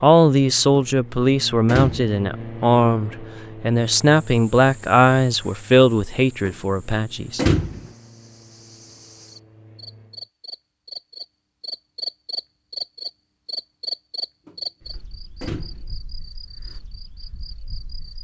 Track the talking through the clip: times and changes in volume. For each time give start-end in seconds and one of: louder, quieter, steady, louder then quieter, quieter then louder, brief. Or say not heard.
0.0-7.4 steady.